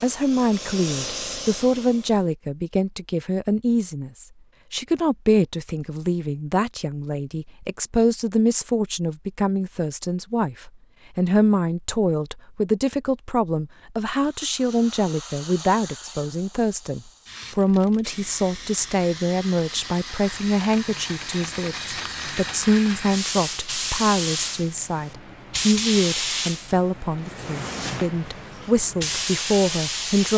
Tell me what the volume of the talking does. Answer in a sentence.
The loudness of the talking stays about the same.